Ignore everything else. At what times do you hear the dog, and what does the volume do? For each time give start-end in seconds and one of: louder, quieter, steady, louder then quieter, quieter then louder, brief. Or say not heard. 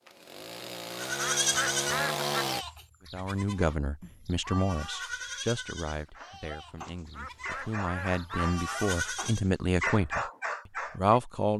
6.2-11.2 louder.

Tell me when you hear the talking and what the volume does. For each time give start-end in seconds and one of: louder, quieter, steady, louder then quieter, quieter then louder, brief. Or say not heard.
3.1-10.2 quieter then louder
10.9-11.5 brief.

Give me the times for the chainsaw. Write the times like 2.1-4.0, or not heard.
0.0-2.6.